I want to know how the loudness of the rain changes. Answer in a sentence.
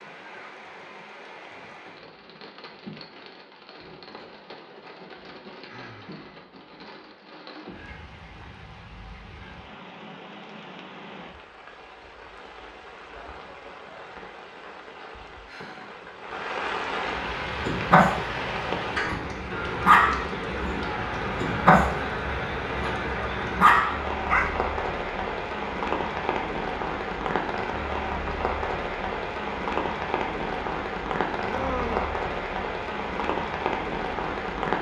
The loudness of the rain goes up.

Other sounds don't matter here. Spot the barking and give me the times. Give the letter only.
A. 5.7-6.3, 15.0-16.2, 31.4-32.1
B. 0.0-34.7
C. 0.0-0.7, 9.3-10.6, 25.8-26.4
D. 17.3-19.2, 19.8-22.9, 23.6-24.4
D.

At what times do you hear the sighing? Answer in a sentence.
The sighing can be heard from 5.7 to 6.3 s, from 15.0 to 16.2 s and from 31.4 to 32.1 s.